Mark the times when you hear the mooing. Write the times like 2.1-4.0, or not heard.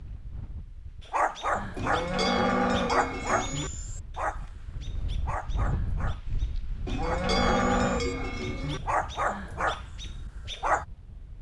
1.8-3.7, 6.8-8.8.